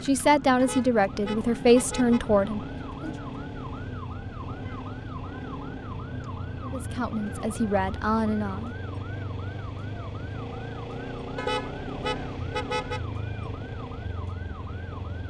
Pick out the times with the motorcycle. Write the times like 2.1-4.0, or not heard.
0.0-15.2.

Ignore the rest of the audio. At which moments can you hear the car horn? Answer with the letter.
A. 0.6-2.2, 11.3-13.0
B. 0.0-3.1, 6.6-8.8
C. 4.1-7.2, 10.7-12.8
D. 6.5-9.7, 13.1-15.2
A.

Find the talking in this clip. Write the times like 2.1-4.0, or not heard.
0.0-3.1, 6.6-8.8.